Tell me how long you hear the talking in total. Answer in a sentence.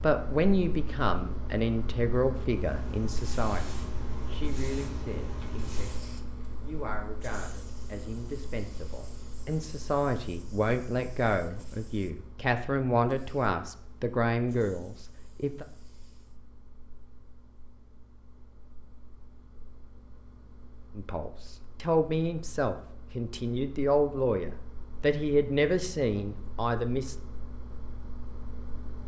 The talking can be heard for 22 seconds in total.